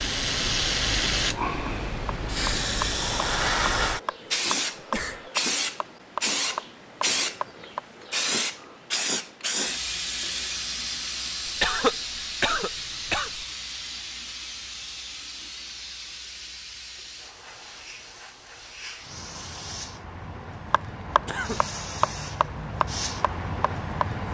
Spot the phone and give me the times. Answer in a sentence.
You can't hear the phone here.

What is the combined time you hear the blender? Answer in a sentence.
The blender can't be heard in this clip.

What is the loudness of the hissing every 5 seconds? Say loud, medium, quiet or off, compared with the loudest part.
loud, loud, medium, quiet, medium.